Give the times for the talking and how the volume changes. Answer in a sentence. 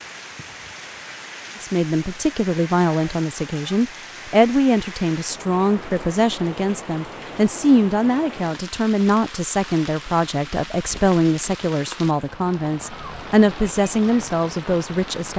The talking can be heard from 1.6 to 15.3 s, at a steady volume.